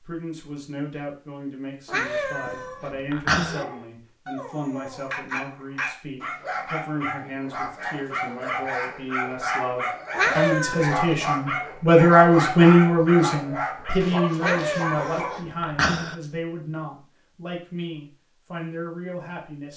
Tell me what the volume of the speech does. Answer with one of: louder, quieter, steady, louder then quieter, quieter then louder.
louder then quieter.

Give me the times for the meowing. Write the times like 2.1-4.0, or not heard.
1.9-3.6, 10.1-11.2, 14.4-16.1.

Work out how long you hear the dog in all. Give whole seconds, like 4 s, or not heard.
12 s.